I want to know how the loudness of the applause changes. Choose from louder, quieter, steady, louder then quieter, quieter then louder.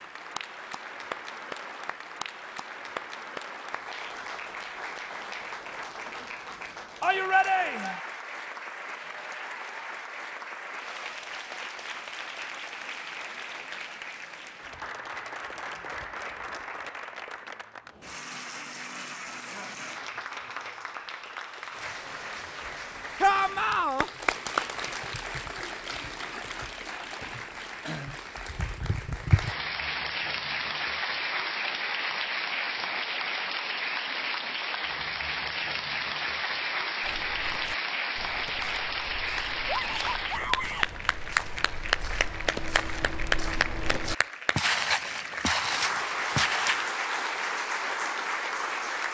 louder.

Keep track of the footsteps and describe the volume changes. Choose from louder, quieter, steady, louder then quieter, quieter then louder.
louder.